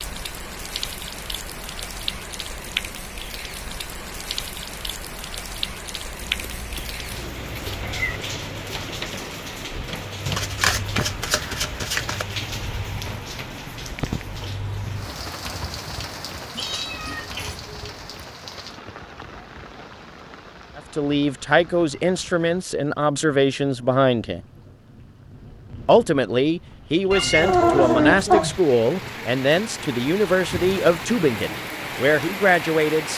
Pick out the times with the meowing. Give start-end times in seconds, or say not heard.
6.2-8.2, 16.6-18.0, 27.1-28.6.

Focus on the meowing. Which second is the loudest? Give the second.
28 s.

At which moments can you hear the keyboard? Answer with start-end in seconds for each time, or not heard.
not heard.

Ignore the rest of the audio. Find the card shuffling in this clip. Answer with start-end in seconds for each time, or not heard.
10.2-12.2.